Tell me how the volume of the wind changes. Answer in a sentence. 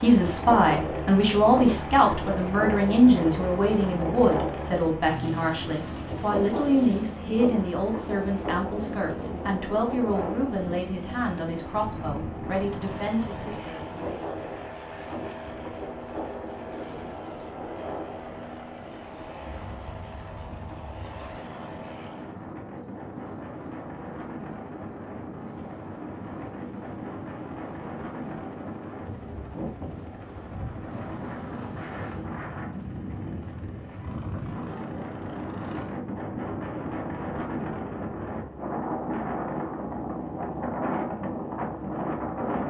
The loudness of the wind goes down, then up.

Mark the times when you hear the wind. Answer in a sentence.
The wind can be heard from 0.1 to 42.6 s.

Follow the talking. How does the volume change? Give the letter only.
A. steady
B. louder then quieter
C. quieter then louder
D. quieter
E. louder
D.